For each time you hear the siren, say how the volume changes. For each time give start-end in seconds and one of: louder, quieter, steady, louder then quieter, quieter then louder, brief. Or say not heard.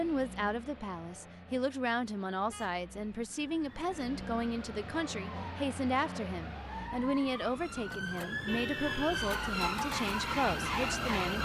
3.2-11.3 louder.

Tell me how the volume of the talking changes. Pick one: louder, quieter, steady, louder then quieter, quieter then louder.
steady.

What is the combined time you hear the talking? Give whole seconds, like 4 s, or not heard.
11 s.